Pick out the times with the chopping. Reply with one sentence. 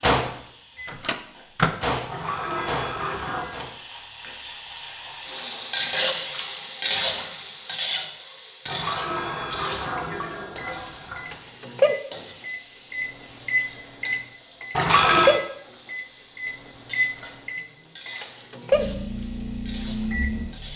You can't hear the chopping here.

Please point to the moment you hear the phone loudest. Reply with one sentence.
The volume of the phone peaks at 15 seconds.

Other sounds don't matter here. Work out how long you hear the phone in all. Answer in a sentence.
The phone can be heard for 5 seconds in total.